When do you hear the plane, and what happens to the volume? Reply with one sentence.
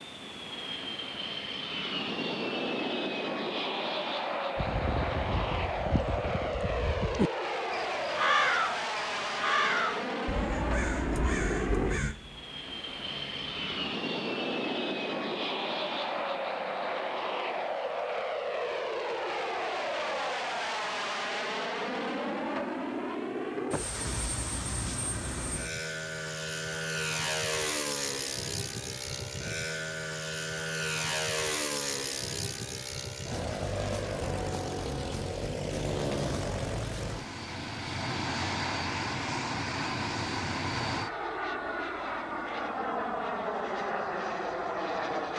The plane can be heard from 0.0 to 45.3 s, at a steady volume.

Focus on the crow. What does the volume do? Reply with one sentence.
The loudness of the crow goes up, then down.